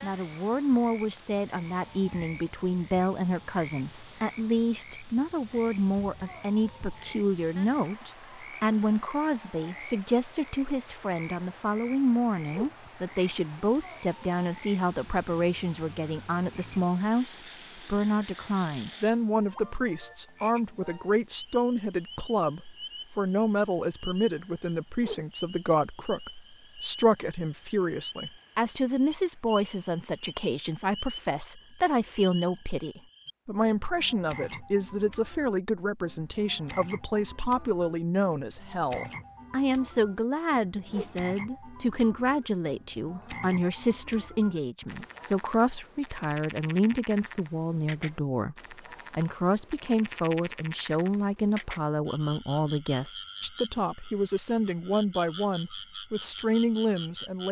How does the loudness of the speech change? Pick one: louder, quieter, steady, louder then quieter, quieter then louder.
steady.